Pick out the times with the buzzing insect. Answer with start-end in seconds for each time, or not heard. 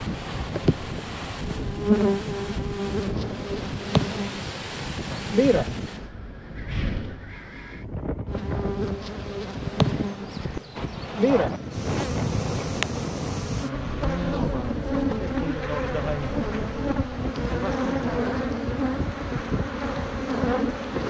0.0-6.0, 8.2-21.0.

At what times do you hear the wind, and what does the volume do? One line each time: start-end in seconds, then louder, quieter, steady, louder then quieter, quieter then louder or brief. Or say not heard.
0.0-21.0 steady.